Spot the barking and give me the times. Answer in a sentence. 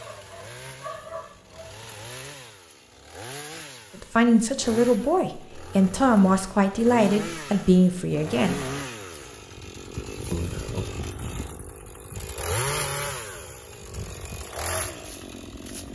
You can hear the barking from 0.0 to 1.9 s.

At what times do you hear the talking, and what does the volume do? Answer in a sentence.
You can hear the talking from 4.0 to 8.6 s, at a steady volume; and briefly from 10.3 to 10.8 s.